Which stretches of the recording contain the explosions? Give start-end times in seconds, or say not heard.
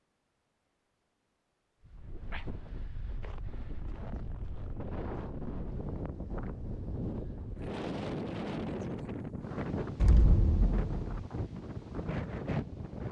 9.9-11.3.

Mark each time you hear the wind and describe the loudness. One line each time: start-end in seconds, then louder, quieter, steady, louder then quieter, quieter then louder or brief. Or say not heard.
1.8-13.0 louder.